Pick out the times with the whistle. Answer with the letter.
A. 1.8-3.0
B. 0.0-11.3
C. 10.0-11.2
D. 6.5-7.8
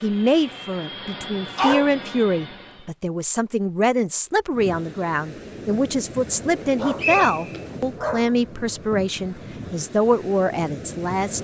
D.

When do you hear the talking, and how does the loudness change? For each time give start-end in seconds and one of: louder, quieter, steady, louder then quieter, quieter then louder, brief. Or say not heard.
0.0-11.3 steady.